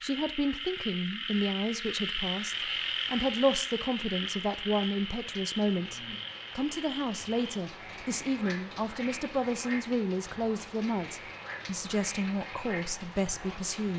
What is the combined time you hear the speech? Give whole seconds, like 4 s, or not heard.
14 s.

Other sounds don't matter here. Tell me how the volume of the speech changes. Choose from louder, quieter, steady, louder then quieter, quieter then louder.
steady.